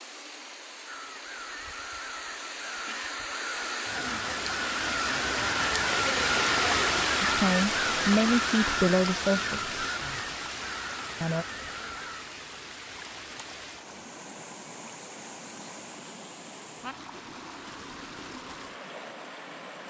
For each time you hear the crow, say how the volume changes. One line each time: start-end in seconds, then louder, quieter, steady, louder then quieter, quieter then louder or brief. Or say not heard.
0.8-12.3 louder then quieter.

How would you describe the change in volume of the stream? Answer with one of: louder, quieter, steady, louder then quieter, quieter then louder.
louder then quieter.